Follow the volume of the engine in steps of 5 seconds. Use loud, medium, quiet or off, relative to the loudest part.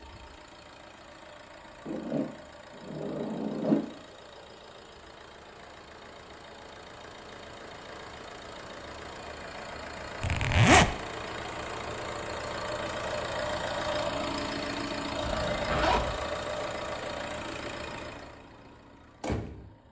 quiet, medium, loud, loud.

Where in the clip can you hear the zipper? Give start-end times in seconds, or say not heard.
1.9-3.9, 10.2-10.9, 15.2-16.2.